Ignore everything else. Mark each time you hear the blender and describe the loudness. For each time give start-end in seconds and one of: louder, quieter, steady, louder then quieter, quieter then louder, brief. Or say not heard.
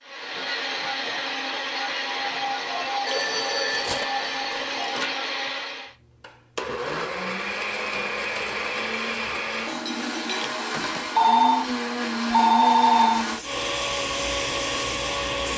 0.0-15.5 steady.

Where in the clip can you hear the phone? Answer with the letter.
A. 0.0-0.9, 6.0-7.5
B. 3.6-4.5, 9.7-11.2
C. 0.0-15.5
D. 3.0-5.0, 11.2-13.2
D.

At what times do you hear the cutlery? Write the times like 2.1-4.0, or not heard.
3.6-4.5, 9.7-11.2.